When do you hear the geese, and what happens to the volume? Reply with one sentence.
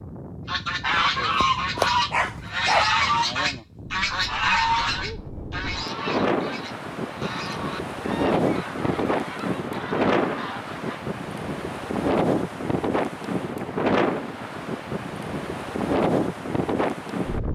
You can hear the geese from 0.5 to 11.0 s, getting quieter.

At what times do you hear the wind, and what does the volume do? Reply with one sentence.
You can hear the wind from 0.0 to 17.5 s, getting louder.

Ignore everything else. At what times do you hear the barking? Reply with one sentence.
The barking can be heard from 0.9 to 3.0 s.